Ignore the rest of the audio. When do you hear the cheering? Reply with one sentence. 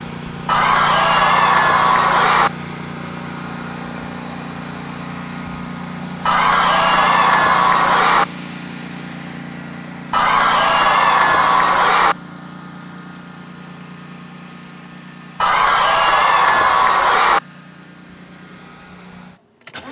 The cheering can be heard from 0.5 to 2.5 s, from 6.2 to 8.2 s, from 10.1 to 12.2 s and from 15.4 to 17.4 s.